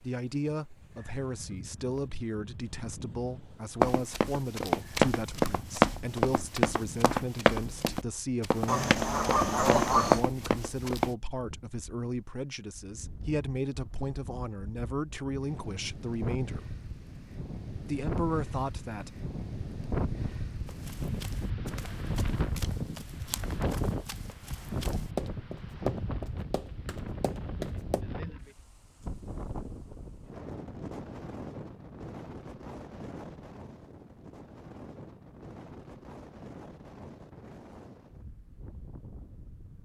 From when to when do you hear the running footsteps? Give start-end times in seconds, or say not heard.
3.8-11.2, 20.6-28.0.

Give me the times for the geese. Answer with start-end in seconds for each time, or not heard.
8.7-10.2.